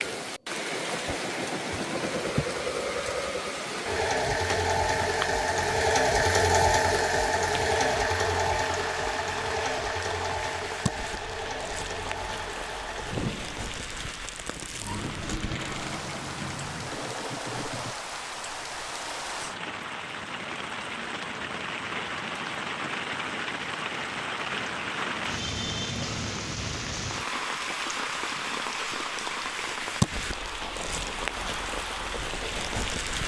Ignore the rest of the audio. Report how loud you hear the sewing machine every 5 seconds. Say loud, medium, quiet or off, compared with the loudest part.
medium, loud, medium, medium, off, off, off.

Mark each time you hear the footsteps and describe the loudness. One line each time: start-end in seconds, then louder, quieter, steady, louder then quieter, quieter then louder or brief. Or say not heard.
not heard.